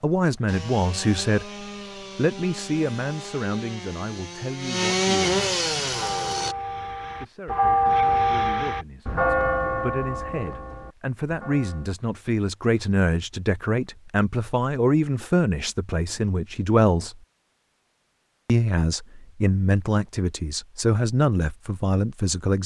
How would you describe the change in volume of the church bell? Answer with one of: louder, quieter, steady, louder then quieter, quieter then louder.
louder then quieter.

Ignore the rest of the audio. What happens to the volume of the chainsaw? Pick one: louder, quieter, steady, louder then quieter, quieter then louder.
louder.